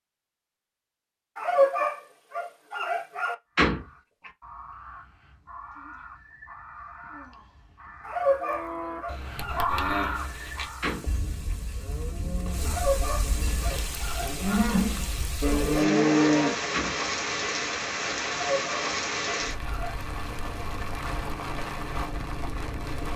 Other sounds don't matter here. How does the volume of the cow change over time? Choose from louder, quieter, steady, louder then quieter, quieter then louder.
quieter then louder.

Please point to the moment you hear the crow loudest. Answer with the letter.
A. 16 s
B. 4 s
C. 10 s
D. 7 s
C.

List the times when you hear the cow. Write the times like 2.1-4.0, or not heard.
8.4-16.6.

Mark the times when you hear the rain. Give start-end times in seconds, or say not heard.
10.1-23.1.